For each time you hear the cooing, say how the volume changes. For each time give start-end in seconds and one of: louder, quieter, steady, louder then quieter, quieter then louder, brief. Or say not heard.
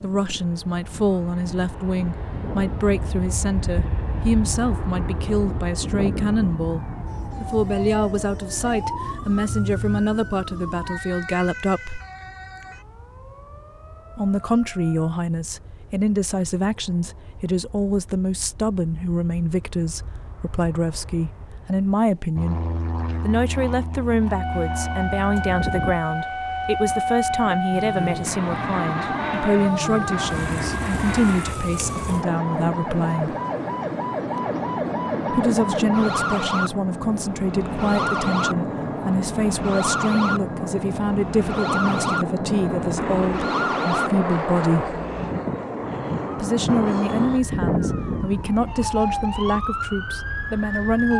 not heard.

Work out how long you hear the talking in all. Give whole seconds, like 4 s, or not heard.
45 s.